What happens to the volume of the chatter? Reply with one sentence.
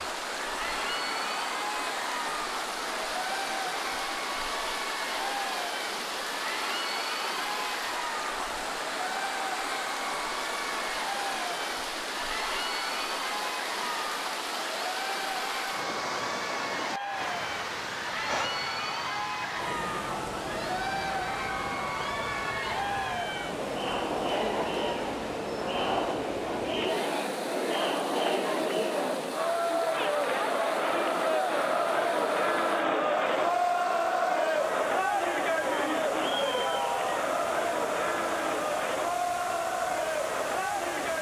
The volume of the chatter goes up.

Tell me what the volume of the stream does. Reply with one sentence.
The volume of the stream goes down.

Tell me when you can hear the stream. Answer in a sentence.
You can hear the stream from 0.0 to 41.1 s.